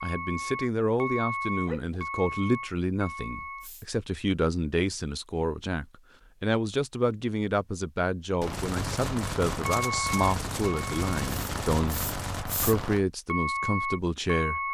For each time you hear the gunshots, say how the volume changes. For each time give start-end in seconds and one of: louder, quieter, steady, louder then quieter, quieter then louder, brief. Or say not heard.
8.4-13.1 steady.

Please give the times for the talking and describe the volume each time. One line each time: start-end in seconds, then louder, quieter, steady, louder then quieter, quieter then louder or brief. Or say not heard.
0.0-14.6 steady.